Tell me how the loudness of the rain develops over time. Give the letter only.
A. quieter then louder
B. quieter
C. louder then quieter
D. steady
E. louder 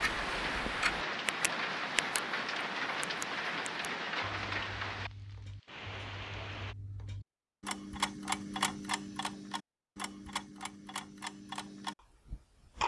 B.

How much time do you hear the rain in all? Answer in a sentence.
The rain can be heard for 7 seconds in total.